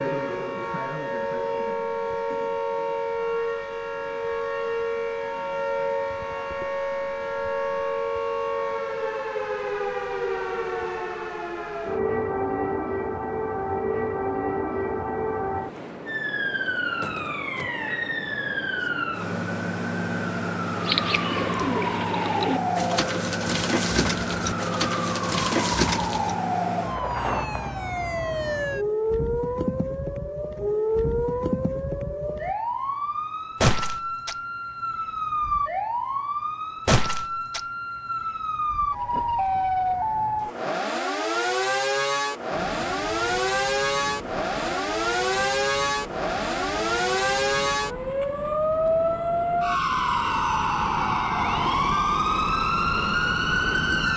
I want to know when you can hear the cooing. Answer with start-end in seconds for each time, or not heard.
20.6-26.4.